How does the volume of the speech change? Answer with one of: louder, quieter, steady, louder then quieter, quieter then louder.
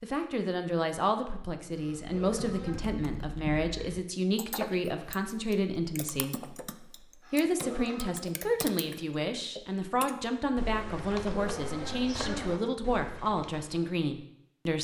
steady.